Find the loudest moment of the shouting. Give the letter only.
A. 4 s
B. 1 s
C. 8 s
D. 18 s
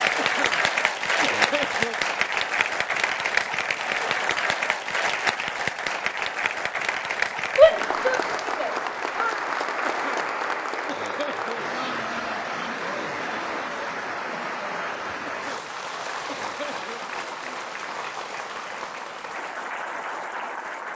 C.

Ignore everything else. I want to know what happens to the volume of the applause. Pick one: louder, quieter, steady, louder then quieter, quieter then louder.
quieter.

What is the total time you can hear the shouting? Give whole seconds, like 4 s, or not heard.
2 s.